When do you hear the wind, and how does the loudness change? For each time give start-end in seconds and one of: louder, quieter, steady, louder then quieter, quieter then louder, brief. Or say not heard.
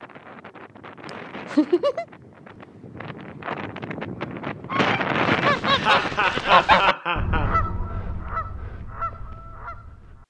0.0-6.1 louder.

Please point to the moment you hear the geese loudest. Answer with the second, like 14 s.
7 s.